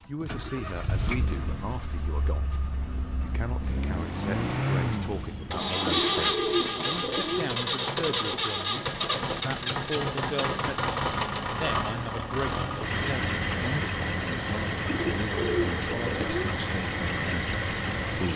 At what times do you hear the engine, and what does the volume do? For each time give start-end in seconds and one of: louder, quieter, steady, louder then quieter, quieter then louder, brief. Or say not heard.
0.0-18.3 louder.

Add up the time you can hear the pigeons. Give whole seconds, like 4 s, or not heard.
3 s.